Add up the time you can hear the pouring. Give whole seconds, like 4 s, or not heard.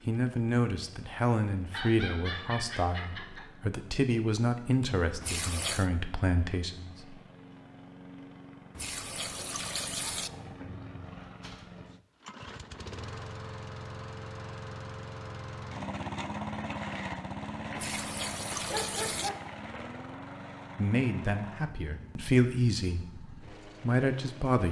4 s.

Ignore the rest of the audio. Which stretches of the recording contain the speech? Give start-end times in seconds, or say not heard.
0.1-7.2, 20.8-24.6.